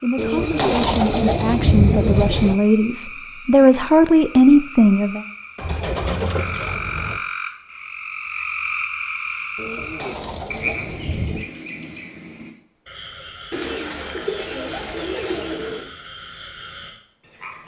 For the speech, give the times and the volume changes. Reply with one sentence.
You can hear the speech from 0.0 to 5.2 s, getting louder.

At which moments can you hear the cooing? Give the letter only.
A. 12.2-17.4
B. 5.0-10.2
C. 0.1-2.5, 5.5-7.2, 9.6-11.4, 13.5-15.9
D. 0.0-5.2
C.